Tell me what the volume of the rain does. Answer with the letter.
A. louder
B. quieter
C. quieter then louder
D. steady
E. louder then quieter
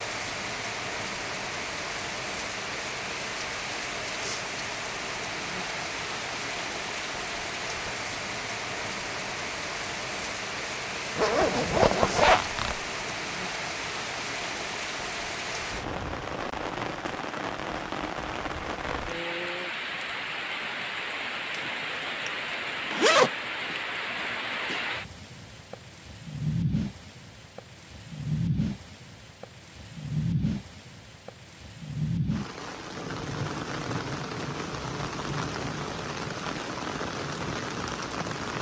D.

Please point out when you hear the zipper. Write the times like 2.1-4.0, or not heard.
11.2-12.8, 21.5-23.3.